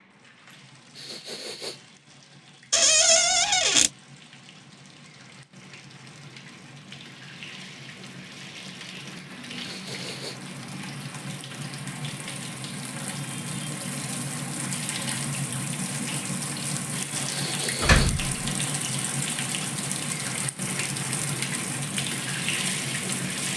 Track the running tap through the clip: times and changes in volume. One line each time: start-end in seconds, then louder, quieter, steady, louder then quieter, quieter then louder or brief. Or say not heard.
0.0-23.5 louder.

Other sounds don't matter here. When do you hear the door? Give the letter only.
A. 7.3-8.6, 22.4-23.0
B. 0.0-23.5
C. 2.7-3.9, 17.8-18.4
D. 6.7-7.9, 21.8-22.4
C.